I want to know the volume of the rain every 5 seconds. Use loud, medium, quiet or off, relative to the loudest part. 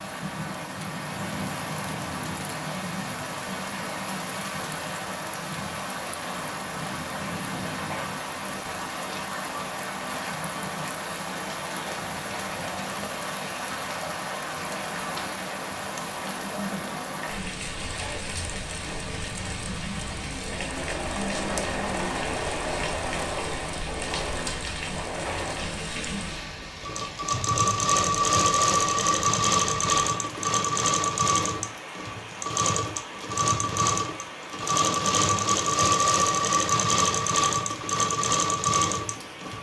loud, loud, loud, loud, loud, loud, medium, medium.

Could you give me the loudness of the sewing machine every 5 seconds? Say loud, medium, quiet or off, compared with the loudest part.
off, off, off, off, medium, loud, loud, loud.